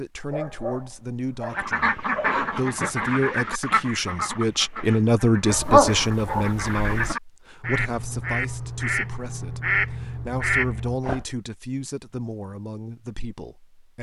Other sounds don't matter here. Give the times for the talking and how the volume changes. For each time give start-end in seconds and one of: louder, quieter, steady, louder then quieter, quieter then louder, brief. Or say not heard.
0.0-13.9 louder then quieter.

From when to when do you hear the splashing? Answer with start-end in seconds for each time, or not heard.
not heard.